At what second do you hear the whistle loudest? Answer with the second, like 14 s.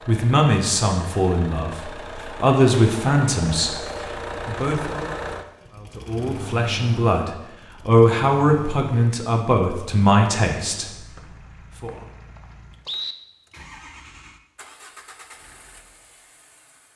13 s.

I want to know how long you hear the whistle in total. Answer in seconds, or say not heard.
2 s.